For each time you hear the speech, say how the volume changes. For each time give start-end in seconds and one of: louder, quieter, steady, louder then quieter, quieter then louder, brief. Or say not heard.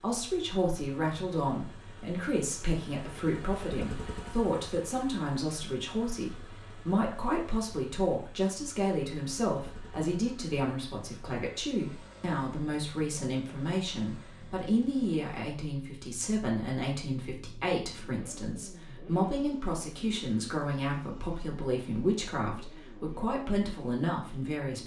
0.0-24.8 steady.